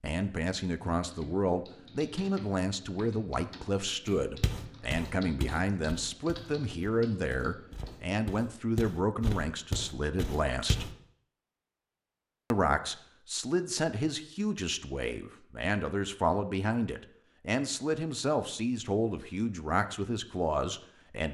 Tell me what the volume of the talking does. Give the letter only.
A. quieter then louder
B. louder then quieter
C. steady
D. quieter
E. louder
C.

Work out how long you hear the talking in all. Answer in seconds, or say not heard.
20 s.